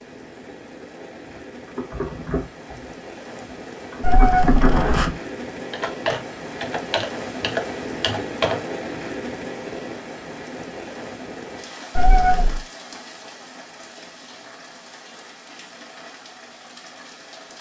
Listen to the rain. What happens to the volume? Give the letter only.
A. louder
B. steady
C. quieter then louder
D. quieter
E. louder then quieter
E.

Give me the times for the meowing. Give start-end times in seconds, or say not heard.
4.0-5.1, 11.9-12.6.